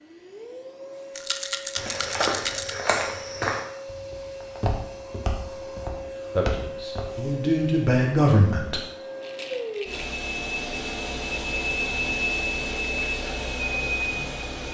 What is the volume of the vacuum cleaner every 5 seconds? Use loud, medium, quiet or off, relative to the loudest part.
medium, medium, loud.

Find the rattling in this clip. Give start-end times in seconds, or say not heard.
1.1-2.8, 9.2-10.2.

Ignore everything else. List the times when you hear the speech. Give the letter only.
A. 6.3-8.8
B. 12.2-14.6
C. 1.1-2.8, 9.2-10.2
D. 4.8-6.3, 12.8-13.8
A.